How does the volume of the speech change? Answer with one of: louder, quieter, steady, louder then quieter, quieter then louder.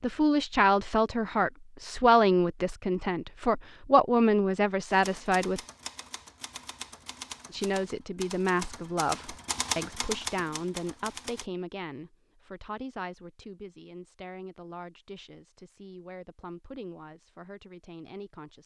quieter.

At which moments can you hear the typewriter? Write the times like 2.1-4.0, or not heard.
4.9-11.5.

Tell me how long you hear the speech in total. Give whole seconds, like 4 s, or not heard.
17 s.